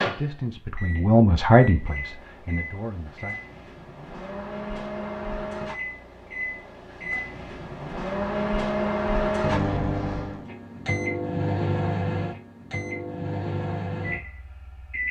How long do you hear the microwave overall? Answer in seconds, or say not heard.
15 s.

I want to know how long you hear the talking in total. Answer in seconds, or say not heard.
3 s.